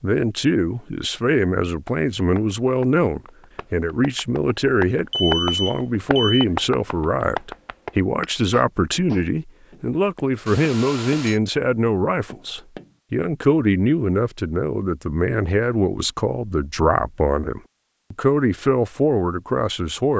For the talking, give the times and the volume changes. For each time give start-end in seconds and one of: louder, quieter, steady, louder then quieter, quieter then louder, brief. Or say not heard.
0.0-20.1 steady.